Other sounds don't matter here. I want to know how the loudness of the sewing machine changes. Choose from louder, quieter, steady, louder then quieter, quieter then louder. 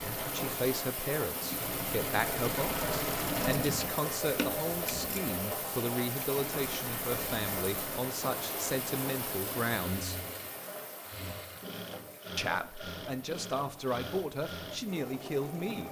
quieter.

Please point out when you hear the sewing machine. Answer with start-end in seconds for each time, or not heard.
0.0-15.8.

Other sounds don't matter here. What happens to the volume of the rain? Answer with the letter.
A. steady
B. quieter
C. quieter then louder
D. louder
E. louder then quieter
B.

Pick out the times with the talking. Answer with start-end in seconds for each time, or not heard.
0.0-10.2, 12.3-15.8.